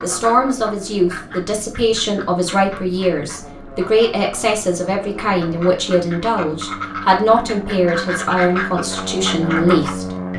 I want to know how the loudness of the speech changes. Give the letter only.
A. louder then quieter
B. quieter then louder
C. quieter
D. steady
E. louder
D.